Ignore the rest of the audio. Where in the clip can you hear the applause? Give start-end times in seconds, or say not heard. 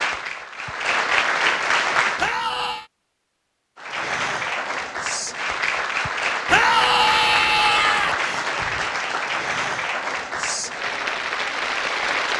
0.0-2.4, 3.8-12.3.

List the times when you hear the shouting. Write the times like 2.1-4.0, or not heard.
2.1-2.9, 6.5-8.2.